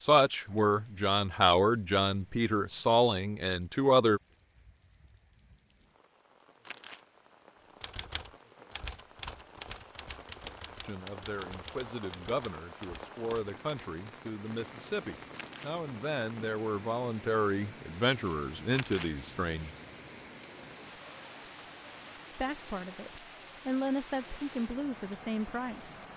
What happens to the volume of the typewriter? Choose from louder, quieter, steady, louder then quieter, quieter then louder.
quieter.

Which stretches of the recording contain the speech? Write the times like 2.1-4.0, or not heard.
0.0-4.2, 10.8-19.7, 22.4-25.9.